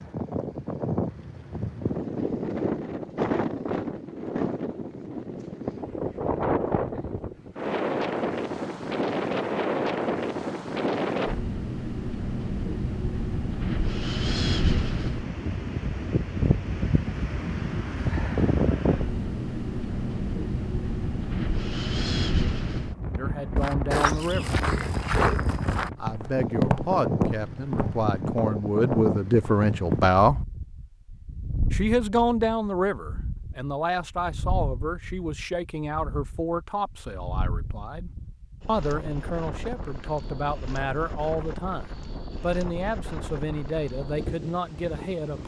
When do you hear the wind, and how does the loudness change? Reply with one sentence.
You can hear the wind from 0.0 to 45.4 s, getting quieter.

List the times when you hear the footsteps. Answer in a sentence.
You can hear the footsteps from 23.6 to 30.1 s.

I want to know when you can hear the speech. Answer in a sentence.
You can hear the speech from 23.1 to 24.6 s, from 26.0 to 30.4 s and from 31.7 to 45.4 s.